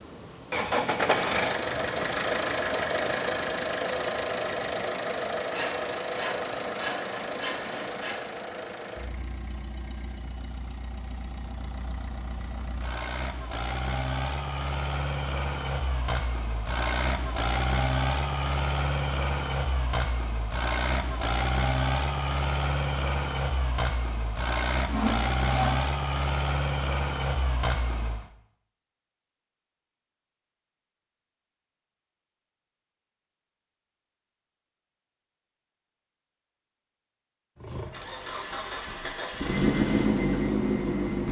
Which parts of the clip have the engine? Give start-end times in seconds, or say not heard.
0.0-28.3, 37.5-41.2.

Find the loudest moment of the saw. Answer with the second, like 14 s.
25 s.